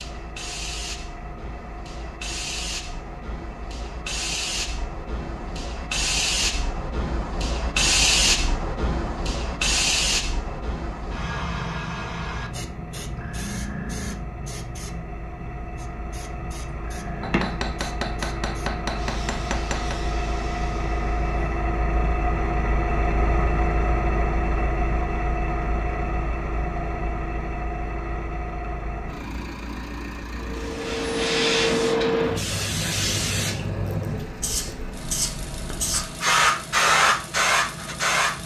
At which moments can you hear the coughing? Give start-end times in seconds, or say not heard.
not heard.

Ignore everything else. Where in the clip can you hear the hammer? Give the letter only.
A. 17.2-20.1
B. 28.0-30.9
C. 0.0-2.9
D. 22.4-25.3
A.